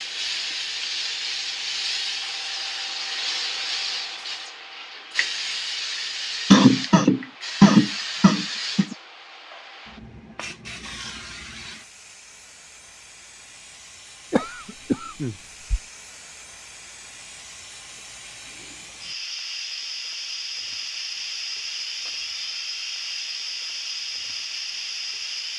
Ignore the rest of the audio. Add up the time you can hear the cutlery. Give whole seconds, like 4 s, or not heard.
not heard.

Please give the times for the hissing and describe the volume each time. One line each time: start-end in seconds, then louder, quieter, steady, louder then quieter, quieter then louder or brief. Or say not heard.
0.0-25.5 quieter then louder.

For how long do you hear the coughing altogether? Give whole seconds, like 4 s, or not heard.
4 s.